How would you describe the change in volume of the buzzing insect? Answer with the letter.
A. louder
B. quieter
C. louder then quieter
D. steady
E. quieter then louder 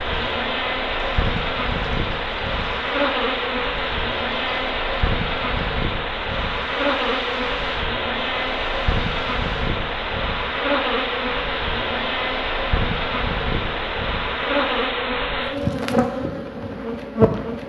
D.